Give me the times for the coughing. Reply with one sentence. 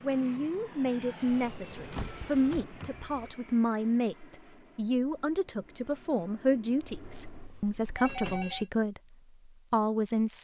The coughing can't be heard in this clip.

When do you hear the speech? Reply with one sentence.
The speech can be heard from 0.0 to 10.3 s.